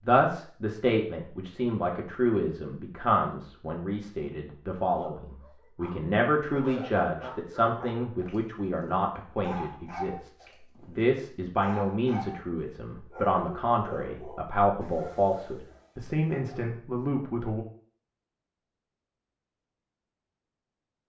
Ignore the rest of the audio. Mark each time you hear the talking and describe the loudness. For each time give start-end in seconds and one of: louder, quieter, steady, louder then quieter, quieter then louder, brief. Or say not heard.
0.1-17.6 steady.